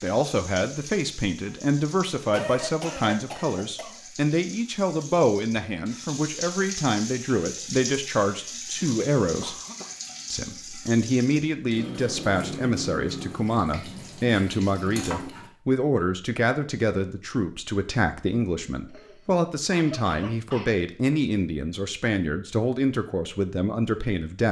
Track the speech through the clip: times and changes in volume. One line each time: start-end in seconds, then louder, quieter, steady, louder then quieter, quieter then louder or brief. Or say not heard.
0.0-9.6 steady
10.3-24.4 steady.